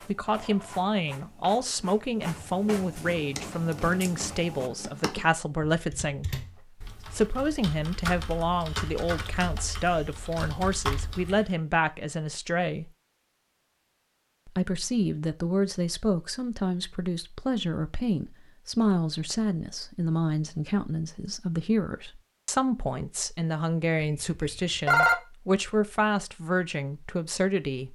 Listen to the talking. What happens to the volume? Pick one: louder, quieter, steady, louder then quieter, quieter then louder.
steady.